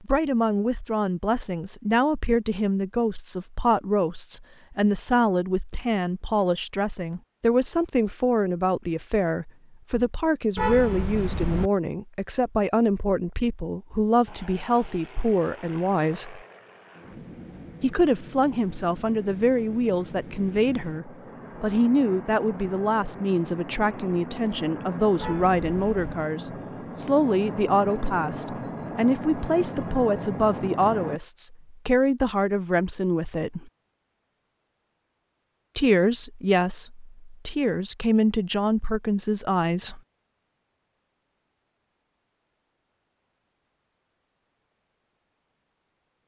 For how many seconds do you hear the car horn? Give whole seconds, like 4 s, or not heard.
2 s.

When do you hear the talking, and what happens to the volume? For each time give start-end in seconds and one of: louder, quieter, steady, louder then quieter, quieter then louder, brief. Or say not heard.
0.0-16.4 steady
17.8-33.7 steady
35.8-40.0 quieter then louder.